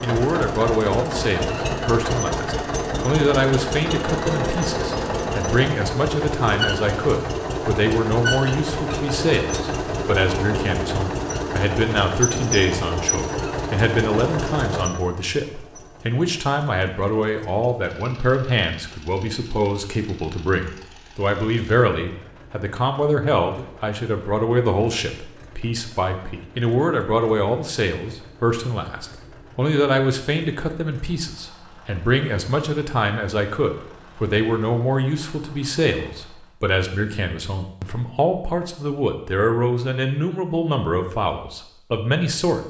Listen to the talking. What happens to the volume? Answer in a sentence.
The volume of the talking stays about the same.